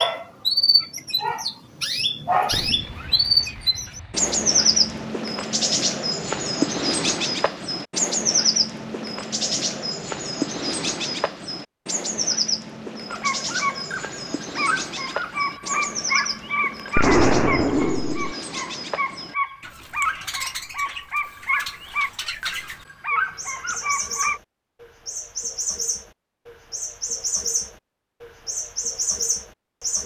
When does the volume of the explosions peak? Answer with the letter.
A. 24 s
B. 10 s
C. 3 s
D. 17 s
D.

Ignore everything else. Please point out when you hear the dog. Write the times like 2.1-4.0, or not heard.
13.1-24.4.